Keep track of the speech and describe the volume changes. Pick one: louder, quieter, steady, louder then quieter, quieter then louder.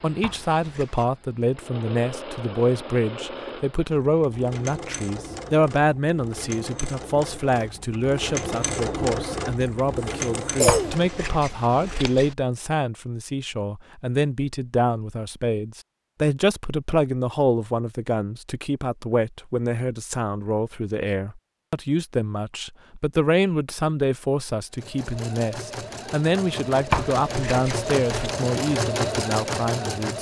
steady.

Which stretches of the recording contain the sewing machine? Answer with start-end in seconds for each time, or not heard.
0.0-12.2, 24.8-30.1.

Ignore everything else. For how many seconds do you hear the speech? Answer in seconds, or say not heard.
30 s.